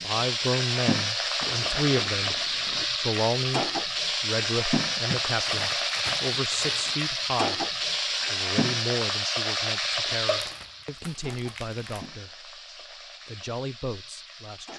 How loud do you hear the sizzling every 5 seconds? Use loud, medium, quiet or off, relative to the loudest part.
loud, loud, medium.